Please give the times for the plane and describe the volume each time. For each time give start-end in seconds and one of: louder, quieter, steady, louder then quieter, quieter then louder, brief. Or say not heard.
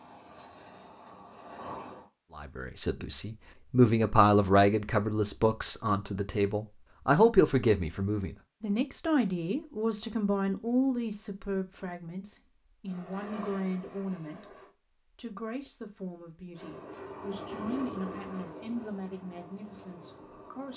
0.0-2.1 brief
12.8-14.8 brief
16.5-20.7 quieter.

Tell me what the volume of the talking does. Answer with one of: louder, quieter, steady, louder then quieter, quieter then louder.
quieter.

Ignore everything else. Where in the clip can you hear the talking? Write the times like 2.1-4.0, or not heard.
2.4-14.6, 15.2-20.7.